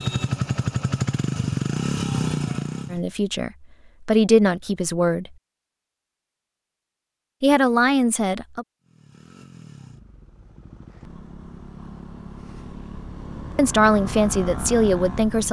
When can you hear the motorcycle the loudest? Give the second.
2 s.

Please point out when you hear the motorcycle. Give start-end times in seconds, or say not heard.
0.0-3.0, 8.8-15.4.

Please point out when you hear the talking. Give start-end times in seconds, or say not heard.
2.9-5.3, 7.4-8.7, 13.6-15.4.